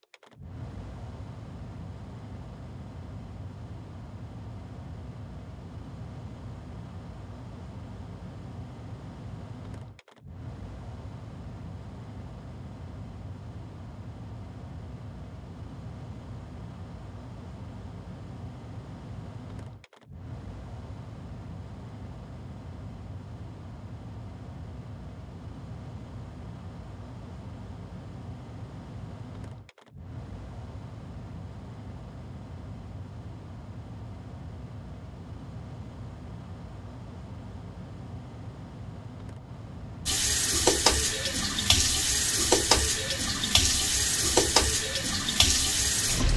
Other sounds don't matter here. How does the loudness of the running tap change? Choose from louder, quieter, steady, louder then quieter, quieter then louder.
steady.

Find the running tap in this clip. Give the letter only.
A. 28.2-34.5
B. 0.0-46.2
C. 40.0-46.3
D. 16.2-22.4
C.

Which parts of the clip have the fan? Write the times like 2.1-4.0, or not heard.
0.0-46.2.